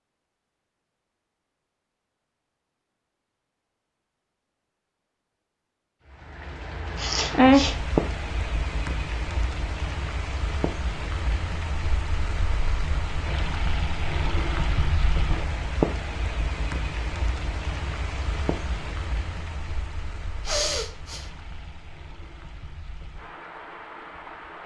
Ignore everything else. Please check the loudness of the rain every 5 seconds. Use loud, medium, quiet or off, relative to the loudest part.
off, loud, medium, medium, quiet.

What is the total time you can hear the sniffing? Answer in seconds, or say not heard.
2 s.